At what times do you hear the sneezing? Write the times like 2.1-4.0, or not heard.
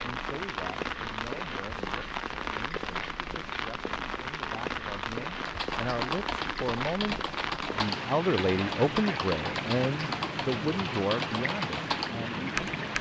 not heard.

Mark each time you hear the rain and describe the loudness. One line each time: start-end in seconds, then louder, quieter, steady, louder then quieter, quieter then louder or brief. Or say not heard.
0.0-12.9 steady.